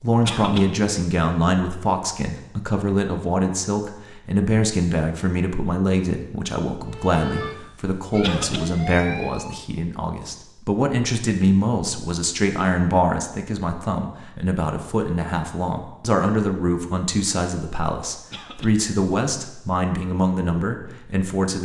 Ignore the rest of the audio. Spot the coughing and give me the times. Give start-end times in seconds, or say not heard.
0.2-0.7, 8.2-8.7, 18.3-18.8.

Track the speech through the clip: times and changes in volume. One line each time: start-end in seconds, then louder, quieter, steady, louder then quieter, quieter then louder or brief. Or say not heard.
0.0-21.6 steady.